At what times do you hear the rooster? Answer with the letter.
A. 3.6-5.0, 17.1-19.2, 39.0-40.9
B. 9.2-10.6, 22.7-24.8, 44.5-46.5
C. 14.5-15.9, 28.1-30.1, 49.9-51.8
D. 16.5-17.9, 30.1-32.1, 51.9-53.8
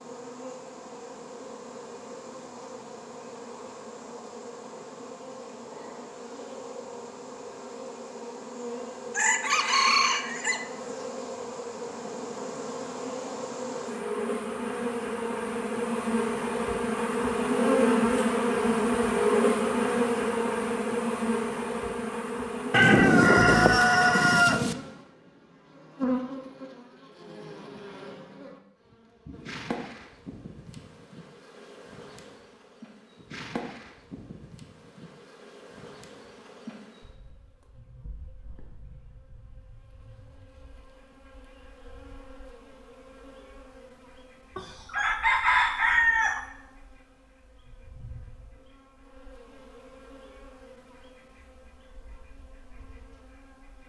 B.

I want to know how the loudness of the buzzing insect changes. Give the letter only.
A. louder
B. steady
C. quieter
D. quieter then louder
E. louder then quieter
E.